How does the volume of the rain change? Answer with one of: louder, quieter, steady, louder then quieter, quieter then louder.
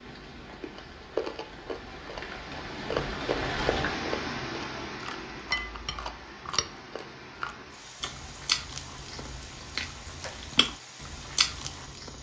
louder then quieter.